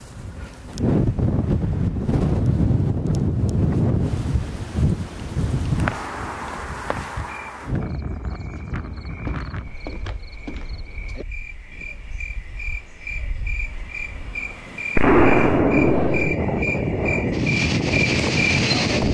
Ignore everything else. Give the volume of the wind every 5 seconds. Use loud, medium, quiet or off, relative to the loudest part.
loud, medium, quiet, loud.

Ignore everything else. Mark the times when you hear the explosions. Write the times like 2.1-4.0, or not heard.
14.9-16.3.